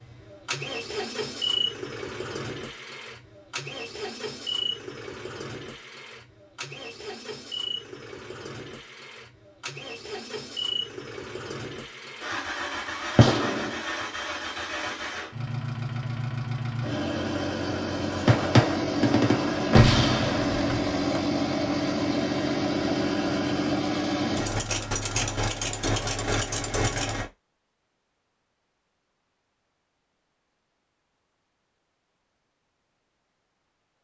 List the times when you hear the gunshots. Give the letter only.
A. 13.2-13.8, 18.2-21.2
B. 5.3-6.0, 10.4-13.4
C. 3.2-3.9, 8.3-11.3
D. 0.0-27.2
A.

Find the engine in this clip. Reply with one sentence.
You can hear the engine from 0.0 to 27.2 s.